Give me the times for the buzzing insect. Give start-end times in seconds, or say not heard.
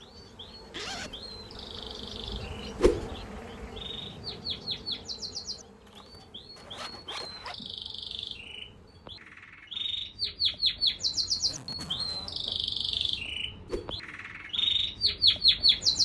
0.0-9.4.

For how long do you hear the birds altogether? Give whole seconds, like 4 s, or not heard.
16 s.